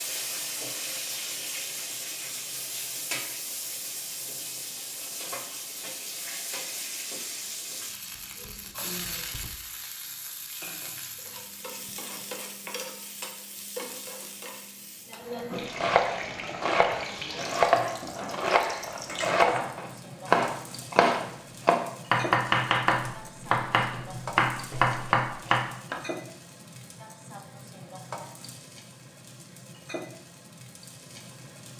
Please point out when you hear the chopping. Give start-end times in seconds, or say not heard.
15.6-26.0.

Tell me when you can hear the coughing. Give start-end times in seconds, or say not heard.
not heard.